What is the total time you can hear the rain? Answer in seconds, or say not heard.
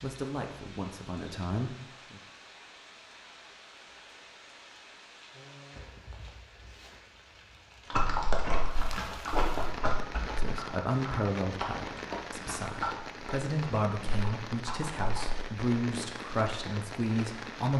18 s.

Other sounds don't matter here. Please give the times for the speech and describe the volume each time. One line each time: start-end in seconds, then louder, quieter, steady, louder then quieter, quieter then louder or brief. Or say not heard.
0.0-2.2 brief
10.1-17.7 quieter then louder.